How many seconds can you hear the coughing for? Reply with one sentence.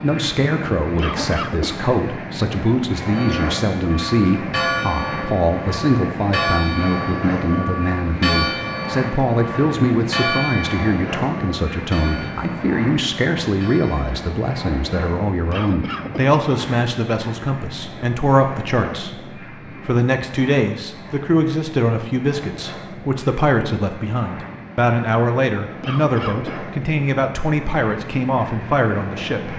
The coughing can be heard for 3 seconds in total.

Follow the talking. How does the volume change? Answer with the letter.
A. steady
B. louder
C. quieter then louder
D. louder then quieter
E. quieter
A.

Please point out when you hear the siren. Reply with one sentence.
You can't hear the siren here.